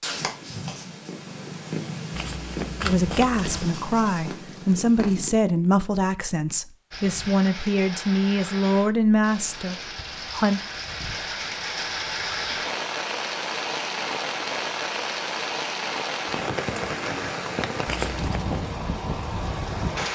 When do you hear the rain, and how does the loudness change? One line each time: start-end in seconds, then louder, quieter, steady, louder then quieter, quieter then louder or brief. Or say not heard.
6.9-20.1 louder.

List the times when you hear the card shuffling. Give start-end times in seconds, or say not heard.
2.1-3.7, 17.9-18.4.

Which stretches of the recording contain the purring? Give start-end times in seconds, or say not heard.
0.0-5.3.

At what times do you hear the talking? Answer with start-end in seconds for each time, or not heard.
2.8-10.6.